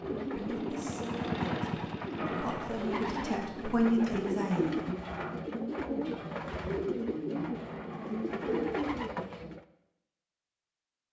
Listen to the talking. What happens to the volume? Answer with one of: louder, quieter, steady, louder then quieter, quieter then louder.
louder.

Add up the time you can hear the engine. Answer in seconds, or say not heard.
3 s.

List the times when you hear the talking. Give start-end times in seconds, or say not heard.
0.2-4.8.